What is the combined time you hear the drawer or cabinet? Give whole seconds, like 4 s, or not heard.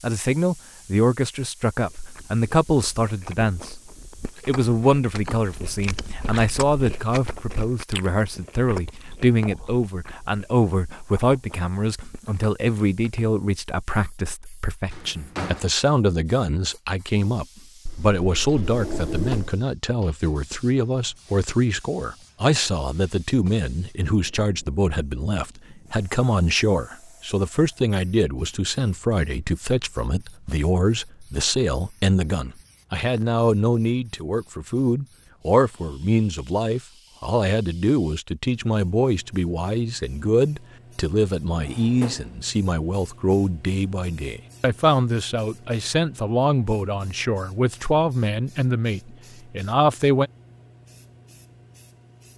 3 s.